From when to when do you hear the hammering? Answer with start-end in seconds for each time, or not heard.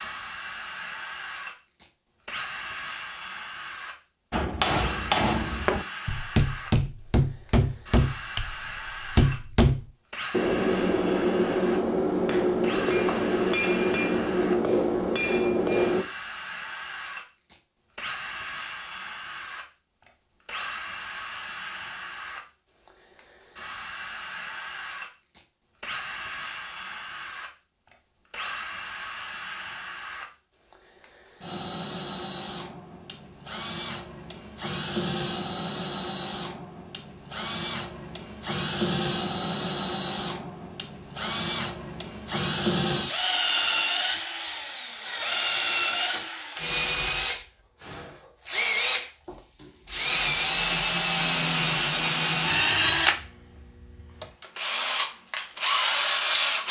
4.3-16.1.